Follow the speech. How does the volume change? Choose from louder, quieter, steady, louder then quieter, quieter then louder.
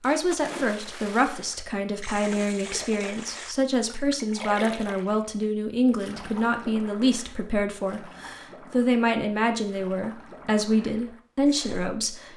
steady.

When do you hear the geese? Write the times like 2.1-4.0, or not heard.
not heard.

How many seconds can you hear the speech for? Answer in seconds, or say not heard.
12 s.